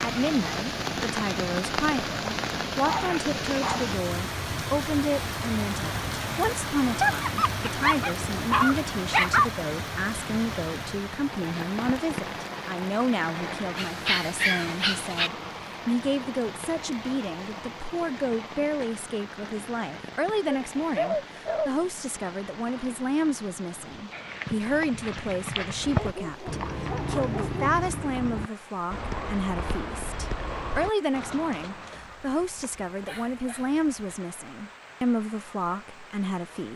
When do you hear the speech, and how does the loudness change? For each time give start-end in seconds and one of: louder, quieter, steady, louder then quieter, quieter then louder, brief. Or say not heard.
0.0-36.7 steady.